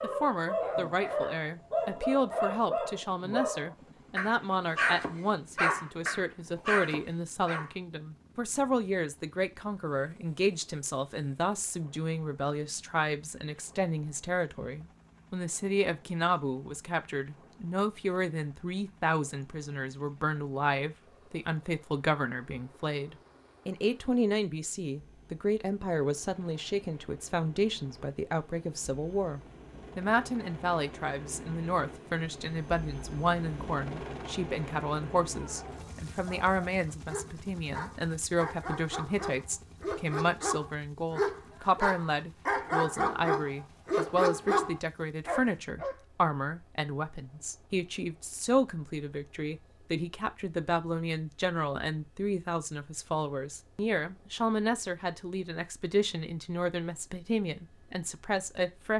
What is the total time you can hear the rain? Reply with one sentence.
You can't hear the rain here.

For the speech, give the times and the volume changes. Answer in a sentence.
You can hear the speech from 0.0 to 58.9 s, at a steady volume.